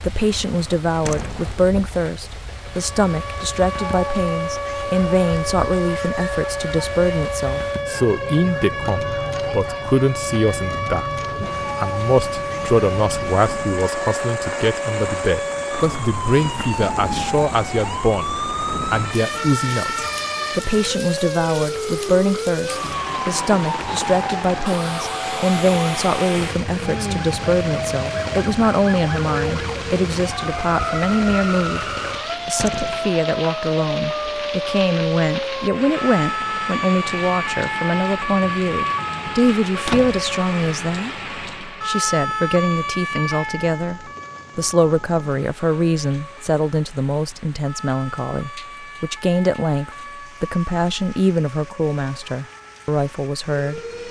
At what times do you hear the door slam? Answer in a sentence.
You can hear the door slam from 1.1 to 1.6 s, from 32.5 to 33.1 s and from 39.8 to 40.3 s.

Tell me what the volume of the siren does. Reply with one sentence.
The volume of the siren goes down.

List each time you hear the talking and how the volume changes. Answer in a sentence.
You can hear the talking from 0.0 to 11.1 s, at a steady volume; and from 11.8 to 53.8 s, at a steady volume.